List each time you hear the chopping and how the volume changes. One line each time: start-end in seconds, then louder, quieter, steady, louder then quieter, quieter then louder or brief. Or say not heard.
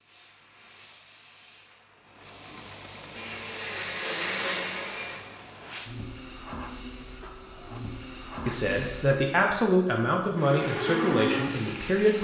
not heard.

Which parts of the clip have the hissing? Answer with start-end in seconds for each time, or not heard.
0.0-9.5.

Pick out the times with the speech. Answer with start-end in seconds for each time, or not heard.
8.4-12.1.